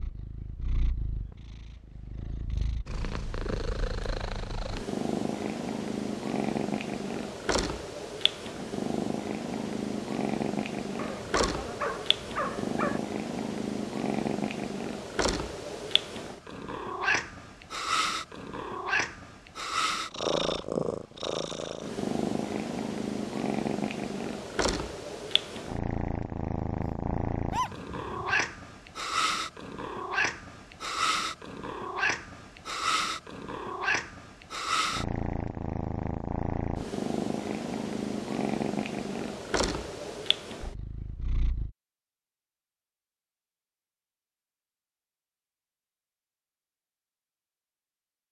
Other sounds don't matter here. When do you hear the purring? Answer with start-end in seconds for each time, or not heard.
0.0-41.7.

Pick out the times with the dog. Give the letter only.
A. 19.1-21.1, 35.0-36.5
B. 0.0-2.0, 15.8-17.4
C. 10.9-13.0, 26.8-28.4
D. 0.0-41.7
C.